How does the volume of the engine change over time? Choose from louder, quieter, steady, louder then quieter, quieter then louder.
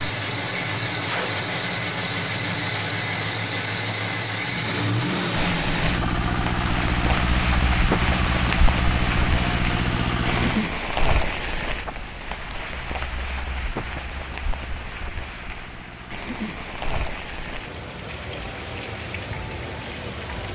quieter.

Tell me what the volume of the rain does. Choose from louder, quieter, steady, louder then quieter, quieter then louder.
quieter.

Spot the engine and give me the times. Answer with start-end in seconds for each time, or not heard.
0.0-20.5.